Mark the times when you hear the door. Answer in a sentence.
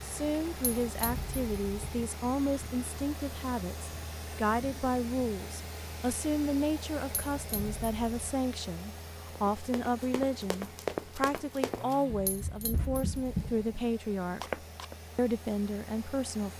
The door can't be heard in this clip.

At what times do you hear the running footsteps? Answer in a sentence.
You can hear the running footsteps from 9.3 to 14.9 s.